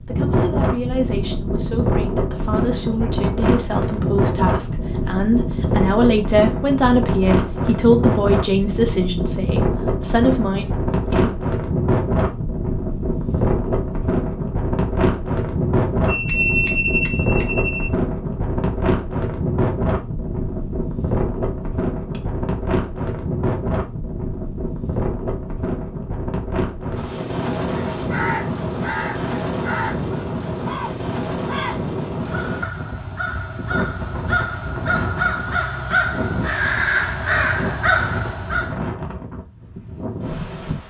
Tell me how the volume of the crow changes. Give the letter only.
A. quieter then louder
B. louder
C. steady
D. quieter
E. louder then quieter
B.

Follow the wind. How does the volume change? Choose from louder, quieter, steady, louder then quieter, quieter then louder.
quieter.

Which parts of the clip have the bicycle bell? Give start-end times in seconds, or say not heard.
16.1-17.9, 22.1-22.8.